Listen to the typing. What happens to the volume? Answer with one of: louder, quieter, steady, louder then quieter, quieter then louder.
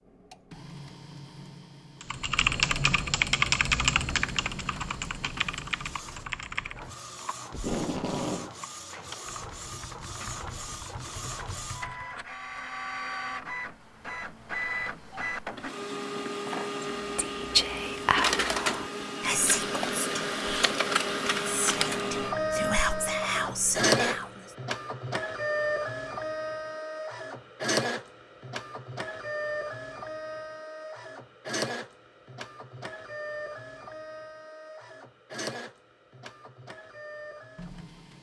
quieter.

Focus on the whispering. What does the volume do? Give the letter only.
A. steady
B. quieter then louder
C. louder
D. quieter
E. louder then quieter
B.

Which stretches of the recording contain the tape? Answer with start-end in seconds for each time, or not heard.
7.5-8.5.